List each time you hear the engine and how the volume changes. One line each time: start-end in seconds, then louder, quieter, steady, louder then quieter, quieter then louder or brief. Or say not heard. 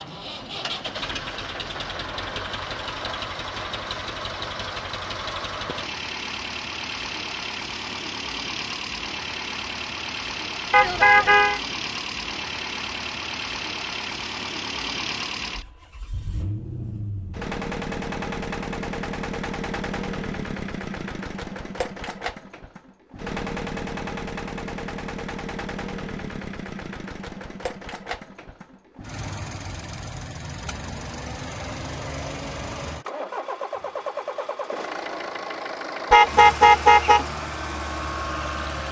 0.0-38.8 steady.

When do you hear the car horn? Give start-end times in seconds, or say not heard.
10.7-11.6, 36.1-37.2.